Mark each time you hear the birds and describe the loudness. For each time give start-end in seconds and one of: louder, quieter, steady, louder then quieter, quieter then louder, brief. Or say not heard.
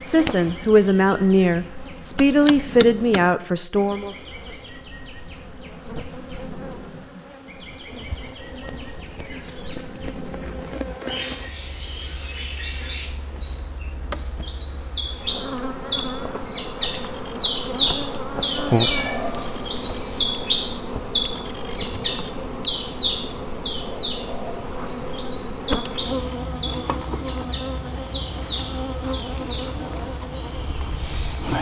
0.0-31.5 louder then quieter.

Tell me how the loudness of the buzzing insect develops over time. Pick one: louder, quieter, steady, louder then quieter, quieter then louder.
louder.